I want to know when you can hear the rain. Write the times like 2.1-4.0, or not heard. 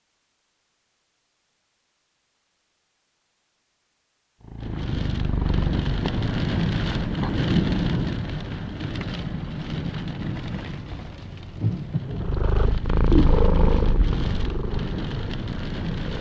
4.5-16.1.